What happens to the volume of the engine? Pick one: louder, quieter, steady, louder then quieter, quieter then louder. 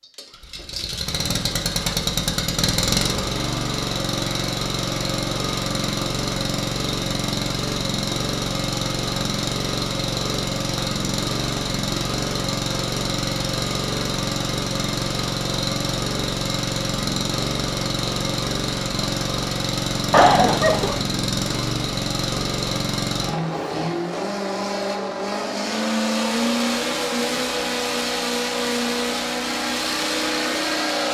steady.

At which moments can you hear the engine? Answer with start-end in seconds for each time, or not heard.
0.0-31.0.